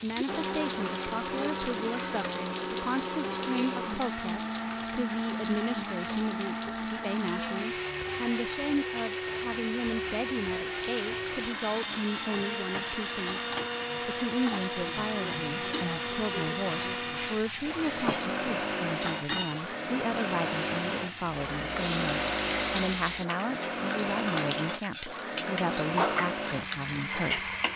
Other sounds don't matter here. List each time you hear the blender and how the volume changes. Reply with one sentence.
The blender can be heard from 0.0 to 27.7 s, at a steady volume.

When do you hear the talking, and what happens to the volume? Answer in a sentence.
The talking can be heard from 0.0 to 27.6 s, at a steady volume.